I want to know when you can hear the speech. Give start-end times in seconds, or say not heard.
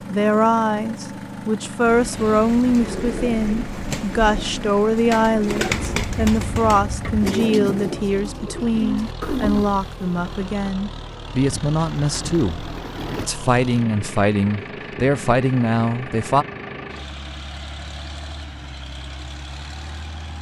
0.1-16.4.